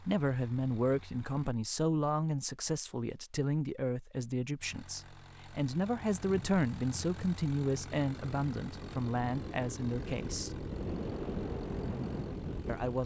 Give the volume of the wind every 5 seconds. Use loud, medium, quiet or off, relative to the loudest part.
off, medium, loud.